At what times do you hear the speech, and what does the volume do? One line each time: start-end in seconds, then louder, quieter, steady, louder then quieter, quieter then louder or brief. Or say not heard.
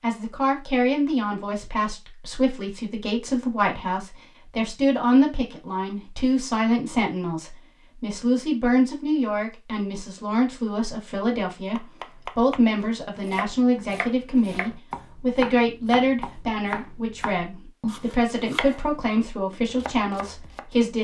0.0-21.0 steady.